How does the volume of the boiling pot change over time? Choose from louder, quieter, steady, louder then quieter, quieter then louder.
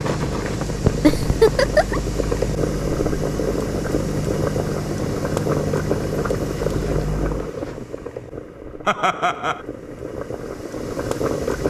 quieter.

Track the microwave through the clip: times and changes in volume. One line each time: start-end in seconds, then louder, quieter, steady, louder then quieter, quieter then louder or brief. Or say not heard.
0.0-7.5 steady.